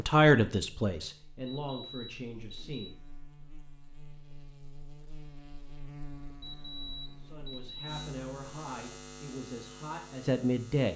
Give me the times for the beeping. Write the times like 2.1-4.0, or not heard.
1.4-2.9, 6.4-8.1.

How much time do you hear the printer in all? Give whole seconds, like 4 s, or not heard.
not heard.